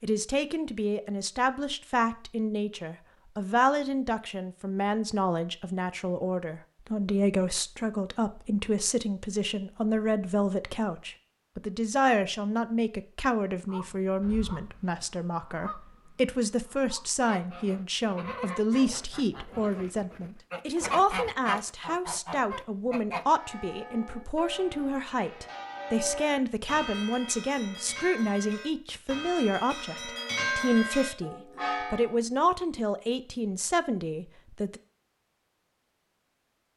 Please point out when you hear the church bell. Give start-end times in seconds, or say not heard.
23.2-32.2.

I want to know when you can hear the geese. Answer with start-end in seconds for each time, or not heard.
13.7-23.2.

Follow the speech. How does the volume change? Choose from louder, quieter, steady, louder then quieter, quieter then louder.
steady.